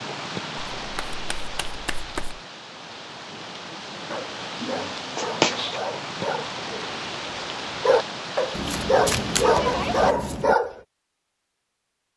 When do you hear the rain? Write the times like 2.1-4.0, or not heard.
0.0-10.2.